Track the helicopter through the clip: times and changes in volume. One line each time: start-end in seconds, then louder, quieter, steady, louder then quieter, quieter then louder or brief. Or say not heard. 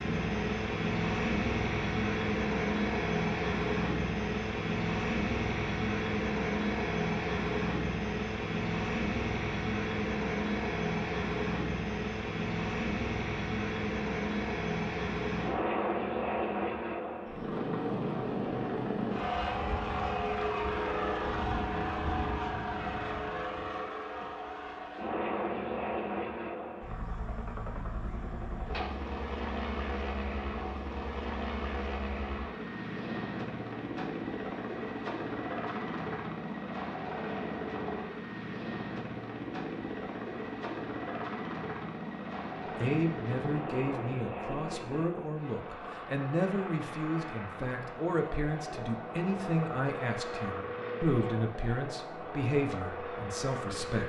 0.0-54.0 quieter.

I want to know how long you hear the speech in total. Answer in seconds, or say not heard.
11 s.